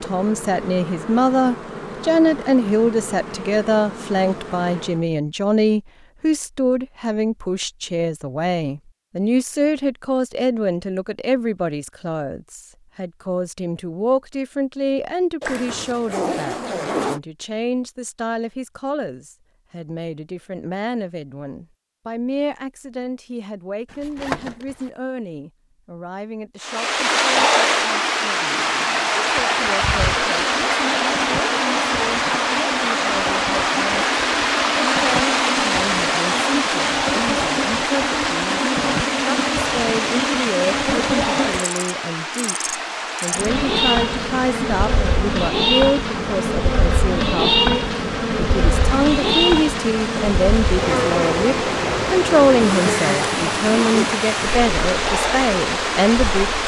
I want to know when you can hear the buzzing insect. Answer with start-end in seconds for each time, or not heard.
0.0-5.0, 28.5-56.6.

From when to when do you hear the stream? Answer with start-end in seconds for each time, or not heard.
26.6-56.6.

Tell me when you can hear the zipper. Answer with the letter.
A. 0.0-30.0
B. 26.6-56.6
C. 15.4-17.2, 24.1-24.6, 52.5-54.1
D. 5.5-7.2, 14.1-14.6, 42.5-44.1
C.